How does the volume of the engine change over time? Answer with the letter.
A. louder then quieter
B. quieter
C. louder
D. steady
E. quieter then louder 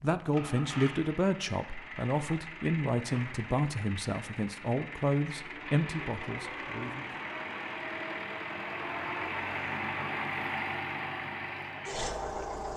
C.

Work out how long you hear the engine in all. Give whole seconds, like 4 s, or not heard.
13 s.